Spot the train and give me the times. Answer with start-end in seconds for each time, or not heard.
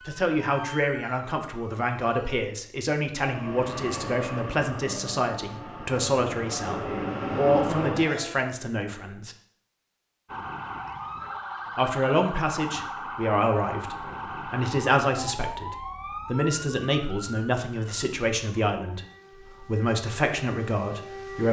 3.2-8.4.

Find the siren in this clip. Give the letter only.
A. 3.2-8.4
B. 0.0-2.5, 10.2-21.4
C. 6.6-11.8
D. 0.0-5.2
B.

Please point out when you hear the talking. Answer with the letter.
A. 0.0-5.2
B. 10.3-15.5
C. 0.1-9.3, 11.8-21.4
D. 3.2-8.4
C.